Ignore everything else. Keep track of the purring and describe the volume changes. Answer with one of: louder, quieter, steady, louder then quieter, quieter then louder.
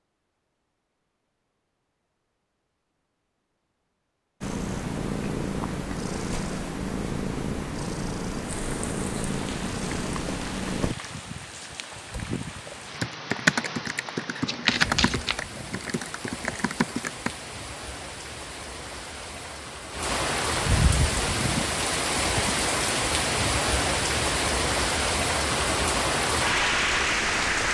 steady.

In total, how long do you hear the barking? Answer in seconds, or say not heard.
not heard.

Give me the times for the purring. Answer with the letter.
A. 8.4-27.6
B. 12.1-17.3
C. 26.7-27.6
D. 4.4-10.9
D.